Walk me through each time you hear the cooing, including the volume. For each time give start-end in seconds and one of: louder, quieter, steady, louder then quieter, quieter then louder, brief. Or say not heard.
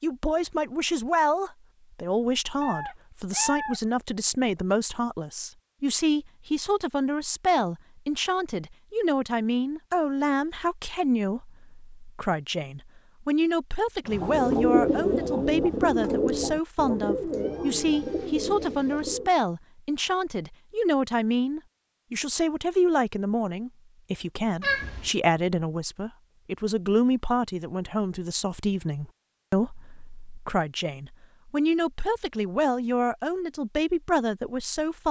14.1-19.3 quieter.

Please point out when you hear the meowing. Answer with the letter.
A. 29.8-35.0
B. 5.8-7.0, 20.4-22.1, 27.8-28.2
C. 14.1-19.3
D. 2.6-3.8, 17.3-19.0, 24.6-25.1
D.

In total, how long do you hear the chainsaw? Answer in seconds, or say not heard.
not heard.